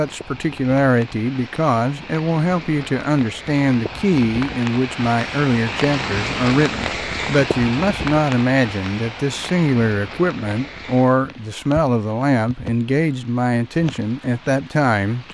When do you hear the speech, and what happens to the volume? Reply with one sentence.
You can hear the speech from 0.0 to 15.2 s, at a steady volume.